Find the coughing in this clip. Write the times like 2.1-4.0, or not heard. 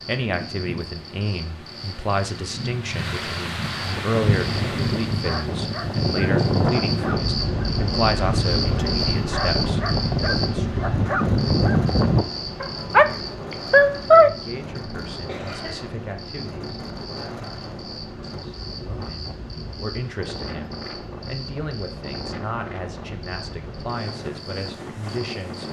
15.2-15.8.